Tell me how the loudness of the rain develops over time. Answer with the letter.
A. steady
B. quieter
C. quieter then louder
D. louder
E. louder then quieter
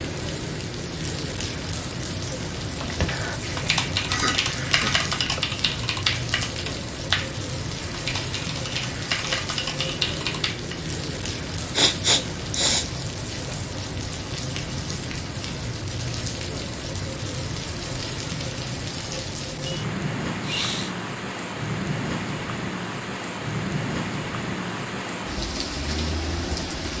A.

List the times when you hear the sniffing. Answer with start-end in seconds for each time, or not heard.
4.0-5.4, 11.8-12.8, 20.4-20.9.